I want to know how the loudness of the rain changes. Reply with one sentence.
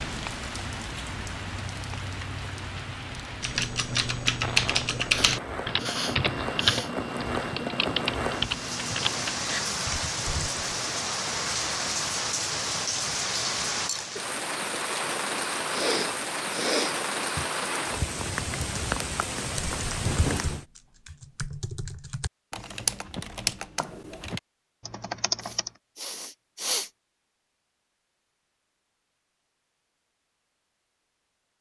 The loudness of the rain goes up.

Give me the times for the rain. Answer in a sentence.
The rain can be heard from 0.0 to 20.6 s.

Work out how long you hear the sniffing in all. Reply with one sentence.
The sniffing can be heard for 5 seconds in total.